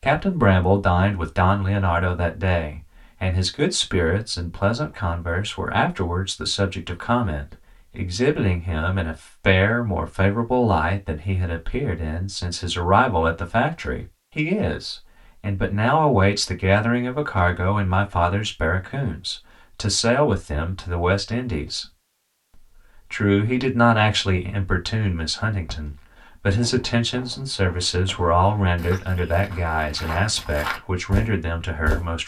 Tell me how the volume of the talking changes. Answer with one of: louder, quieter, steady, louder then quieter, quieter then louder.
steady.